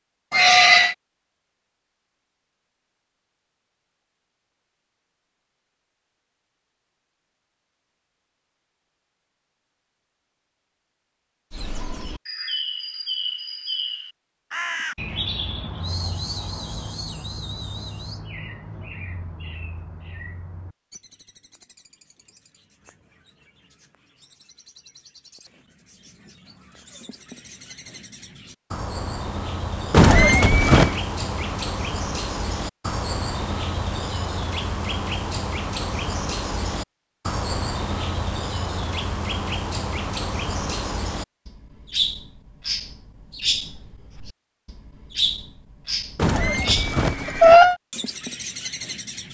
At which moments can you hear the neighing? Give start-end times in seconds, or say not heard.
0.3-0.9, 29.9-31.0, 46.1-47.8.